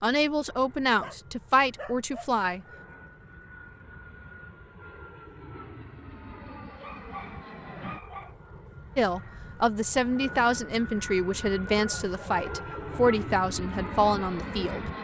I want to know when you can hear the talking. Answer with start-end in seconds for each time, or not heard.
0.0-2.6, 8.9-14.8.